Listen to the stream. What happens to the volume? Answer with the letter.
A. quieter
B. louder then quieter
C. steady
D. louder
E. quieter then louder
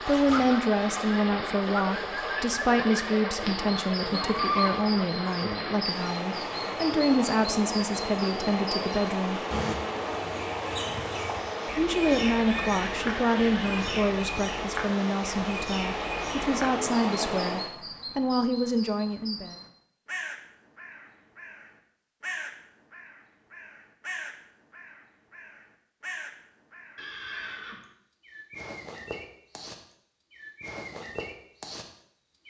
C.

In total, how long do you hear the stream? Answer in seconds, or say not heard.
18 s.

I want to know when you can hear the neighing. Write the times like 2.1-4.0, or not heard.
4.0-4.8, 12.1-14.1, 26.9-27.9.